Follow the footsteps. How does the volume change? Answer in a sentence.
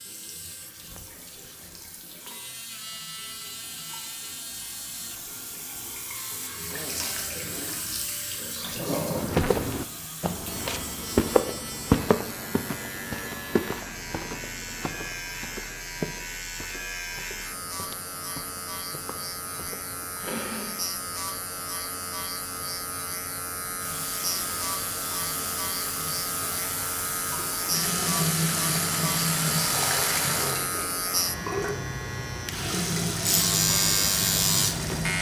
The volume of the footsteps goes down.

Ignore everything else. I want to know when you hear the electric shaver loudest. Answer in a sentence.
The loudest moment of the electric shaver is at 34 seconds.